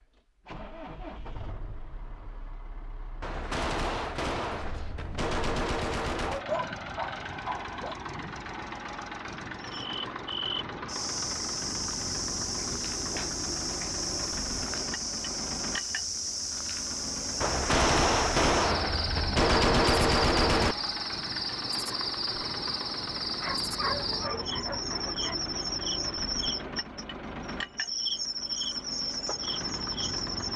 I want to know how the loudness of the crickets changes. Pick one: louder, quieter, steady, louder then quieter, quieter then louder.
steady.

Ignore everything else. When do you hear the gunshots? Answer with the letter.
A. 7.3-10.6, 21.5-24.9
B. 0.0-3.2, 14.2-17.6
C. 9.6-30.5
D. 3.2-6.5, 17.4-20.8
D.